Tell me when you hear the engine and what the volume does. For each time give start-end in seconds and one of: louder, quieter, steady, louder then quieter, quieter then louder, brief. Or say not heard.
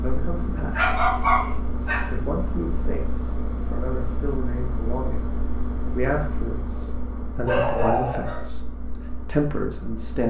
0.0-10.2 quieter.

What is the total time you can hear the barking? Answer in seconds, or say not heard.
2 s.